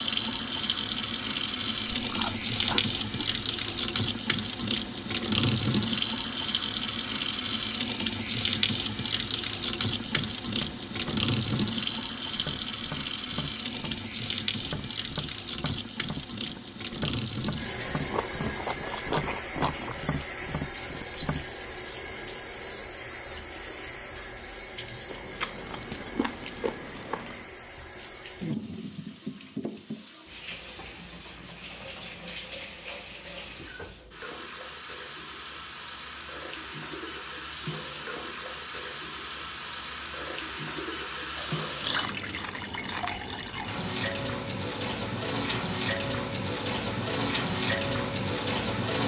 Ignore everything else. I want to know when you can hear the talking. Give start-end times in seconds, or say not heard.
not heard.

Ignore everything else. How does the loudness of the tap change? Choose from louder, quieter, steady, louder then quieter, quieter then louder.
quieter then louder.